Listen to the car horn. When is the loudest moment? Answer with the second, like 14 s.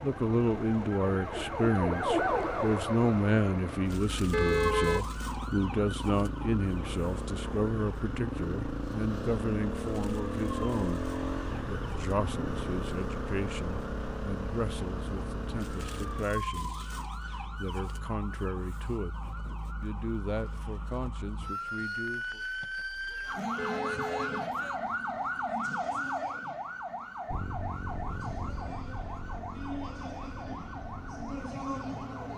5 s.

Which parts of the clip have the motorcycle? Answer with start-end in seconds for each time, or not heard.
0.0-16.2, 27.2-32.3.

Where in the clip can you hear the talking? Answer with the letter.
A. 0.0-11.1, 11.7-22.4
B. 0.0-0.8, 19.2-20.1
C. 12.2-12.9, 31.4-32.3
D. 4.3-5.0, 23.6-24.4
A.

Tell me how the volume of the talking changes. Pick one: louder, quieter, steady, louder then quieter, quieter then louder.
quieter.